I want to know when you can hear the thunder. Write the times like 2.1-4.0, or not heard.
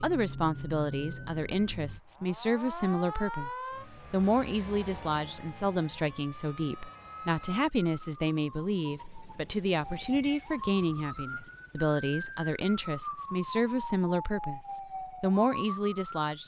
not heard.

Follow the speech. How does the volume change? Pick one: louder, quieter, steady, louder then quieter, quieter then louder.
steady.